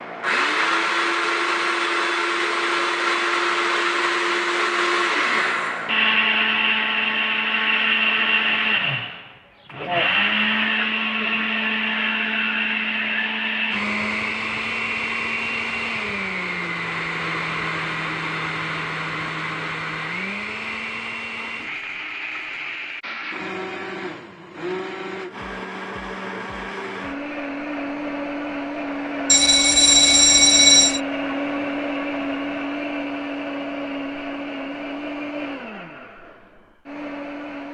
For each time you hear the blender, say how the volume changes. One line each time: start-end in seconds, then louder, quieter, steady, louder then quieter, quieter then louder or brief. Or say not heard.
0.0-37.6 quieter.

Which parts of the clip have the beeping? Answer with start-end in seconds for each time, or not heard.
29.2-31.0.